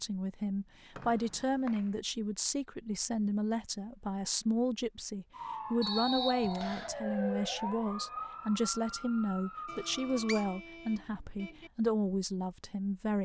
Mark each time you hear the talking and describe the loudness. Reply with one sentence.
You can hear the talking from 0.0 to 13.1 s, at a steady volume.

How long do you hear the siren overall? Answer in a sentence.
You can hear the siren for 5 seconds altogether.